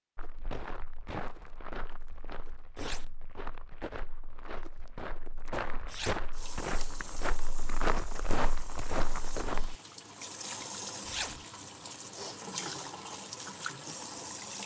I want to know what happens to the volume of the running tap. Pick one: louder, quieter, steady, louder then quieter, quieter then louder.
louder.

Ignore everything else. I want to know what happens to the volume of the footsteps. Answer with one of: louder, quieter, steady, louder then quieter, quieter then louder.
louder.